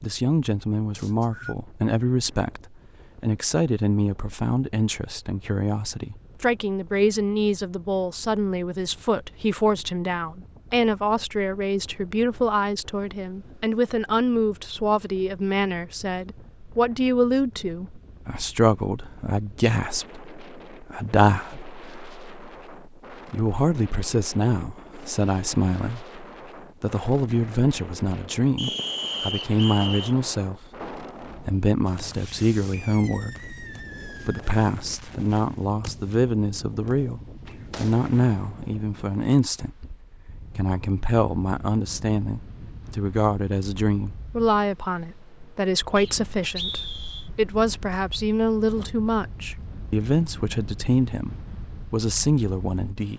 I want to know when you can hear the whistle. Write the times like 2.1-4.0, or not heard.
0.9-1.6, 28.6-30.1, 46.0-47.3.